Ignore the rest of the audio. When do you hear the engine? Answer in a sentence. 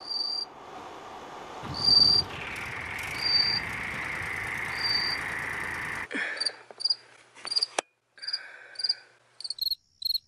The engine can be heard from 1.6 to 6.1 s.